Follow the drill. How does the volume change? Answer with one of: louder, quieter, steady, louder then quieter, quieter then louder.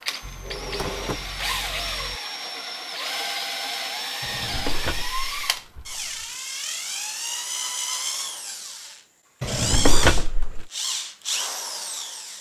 steady.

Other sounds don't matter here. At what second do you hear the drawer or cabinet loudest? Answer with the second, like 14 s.
10 s.